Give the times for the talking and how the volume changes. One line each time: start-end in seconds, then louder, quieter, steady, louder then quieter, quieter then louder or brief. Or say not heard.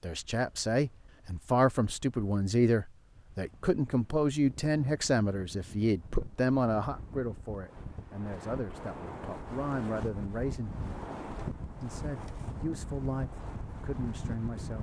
0.0-10.8 quieter
11.8-14.7 brief.